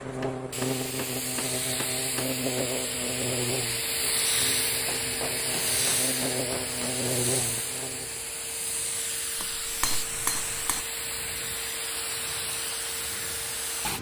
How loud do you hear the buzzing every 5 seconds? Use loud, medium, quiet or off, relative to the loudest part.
loud, loud, off.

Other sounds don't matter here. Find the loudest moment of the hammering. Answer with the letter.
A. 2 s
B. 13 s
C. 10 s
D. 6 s
C.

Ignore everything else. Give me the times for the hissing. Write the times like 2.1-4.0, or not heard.
0.0-13.9.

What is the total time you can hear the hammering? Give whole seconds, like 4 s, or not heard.
6 s.